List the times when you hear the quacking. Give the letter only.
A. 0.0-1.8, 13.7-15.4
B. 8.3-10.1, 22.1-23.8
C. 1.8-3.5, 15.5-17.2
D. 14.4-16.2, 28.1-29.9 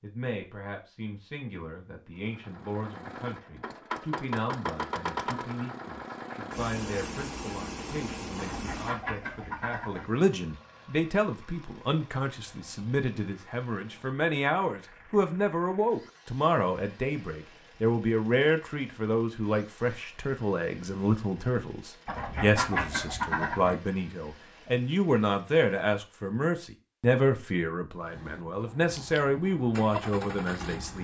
B.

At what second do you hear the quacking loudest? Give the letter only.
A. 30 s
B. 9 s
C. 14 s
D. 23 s
D.